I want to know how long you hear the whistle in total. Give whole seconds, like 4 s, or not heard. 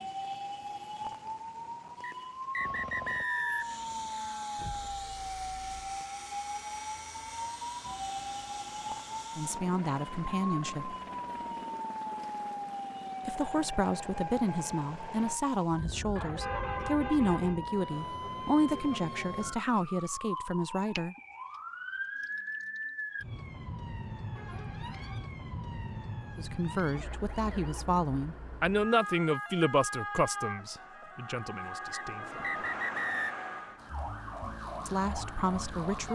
3 s.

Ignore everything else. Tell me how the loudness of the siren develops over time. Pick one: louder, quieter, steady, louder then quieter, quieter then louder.
steady.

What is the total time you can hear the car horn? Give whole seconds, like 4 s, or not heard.
4 s.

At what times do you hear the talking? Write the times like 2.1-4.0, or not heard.
9.3-10.9, 13.2-21.1, 26.4-32.5, 34.9-36.1.